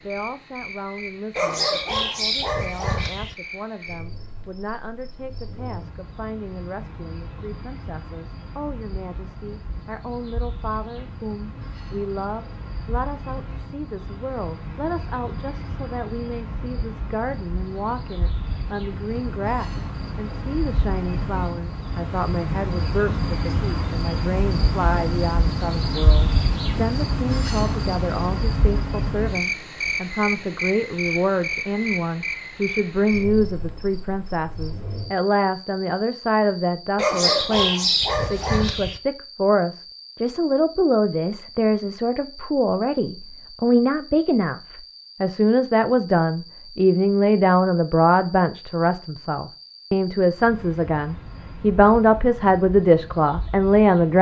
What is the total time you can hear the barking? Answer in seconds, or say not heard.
4 s.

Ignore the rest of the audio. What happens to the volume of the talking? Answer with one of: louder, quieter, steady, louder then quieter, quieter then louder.
louder.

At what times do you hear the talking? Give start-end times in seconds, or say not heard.
0.0-44.6, 45.2-54.1.